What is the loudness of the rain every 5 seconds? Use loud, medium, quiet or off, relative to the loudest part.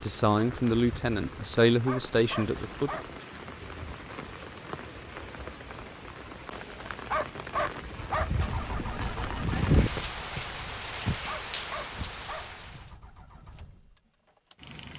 medium, loud, loud.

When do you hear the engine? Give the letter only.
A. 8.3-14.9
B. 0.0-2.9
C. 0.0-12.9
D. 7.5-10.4
A.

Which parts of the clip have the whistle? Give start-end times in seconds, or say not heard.
not heard.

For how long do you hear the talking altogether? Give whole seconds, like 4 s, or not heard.
3 s.